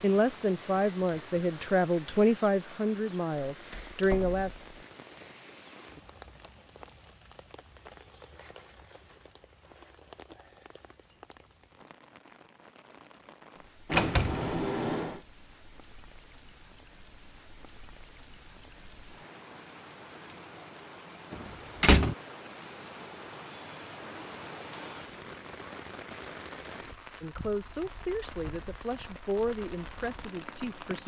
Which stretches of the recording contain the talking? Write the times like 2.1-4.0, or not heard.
0.0-4.5, 27.2-31.0.